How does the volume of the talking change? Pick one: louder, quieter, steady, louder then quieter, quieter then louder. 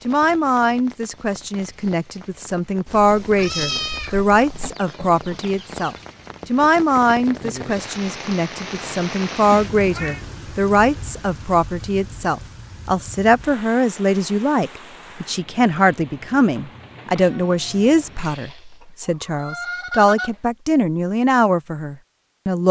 steady.